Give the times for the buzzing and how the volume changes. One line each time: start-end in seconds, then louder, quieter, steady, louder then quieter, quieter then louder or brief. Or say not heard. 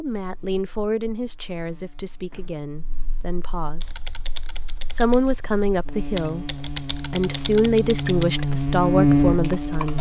0.1-9.9 louder.